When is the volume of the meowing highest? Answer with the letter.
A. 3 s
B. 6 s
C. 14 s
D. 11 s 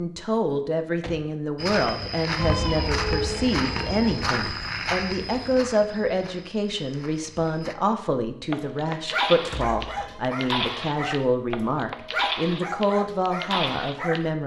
A.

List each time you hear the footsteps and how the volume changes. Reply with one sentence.
You can hear the footsteps from 1.6 to 7.8 s, getting quieter.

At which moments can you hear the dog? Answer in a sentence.
The dog can be heard from 8.5 to 14.2 s.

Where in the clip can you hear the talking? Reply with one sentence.
You can hear the talking from 0.0 to 14.4 s.